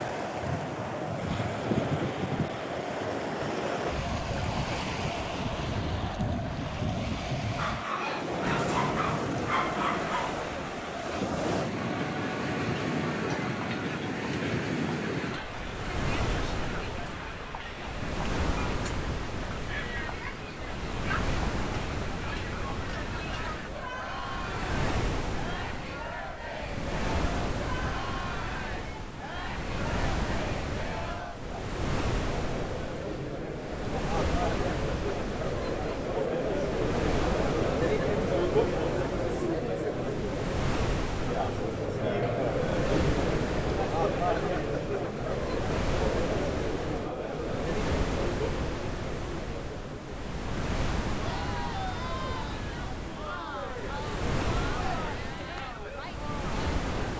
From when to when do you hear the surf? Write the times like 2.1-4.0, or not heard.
0.0-57.1.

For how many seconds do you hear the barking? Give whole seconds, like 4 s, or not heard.
3 s.